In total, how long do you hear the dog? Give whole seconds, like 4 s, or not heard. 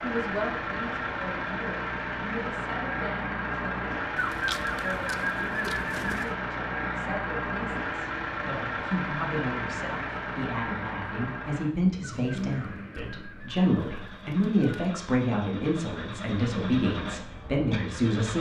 not heard.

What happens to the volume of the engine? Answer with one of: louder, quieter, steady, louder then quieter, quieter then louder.
quieter.